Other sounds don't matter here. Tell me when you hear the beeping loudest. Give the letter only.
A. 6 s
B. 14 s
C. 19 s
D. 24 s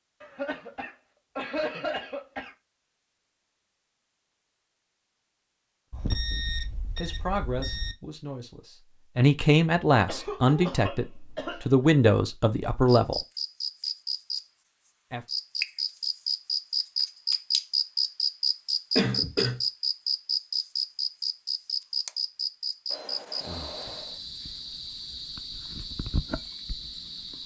A.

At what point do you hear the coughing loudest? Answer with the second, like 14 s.
19 s.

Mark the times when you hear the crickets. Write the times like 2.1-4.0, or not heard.
12.8-27.4.